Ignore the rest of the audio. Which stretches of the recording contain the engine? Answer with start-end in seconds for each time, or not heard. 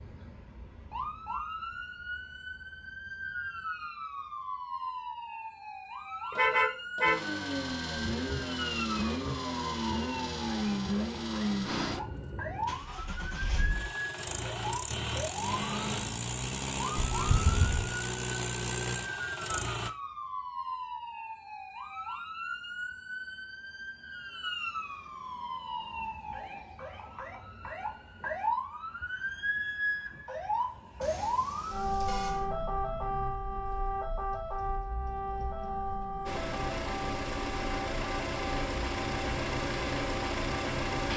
7.0-19.9, 36.2-41.1.